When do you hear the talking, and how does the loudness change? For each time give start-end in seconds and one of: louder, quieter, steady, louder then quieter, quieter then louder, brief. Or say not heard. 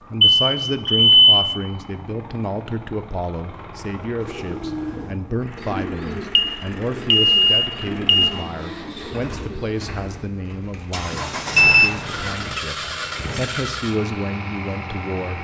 0.1-15.3 steady.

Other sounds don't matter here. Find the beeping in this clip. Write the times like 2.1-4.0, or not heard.
0.2-1.4, 6.3-8.3, 11.1-12.6.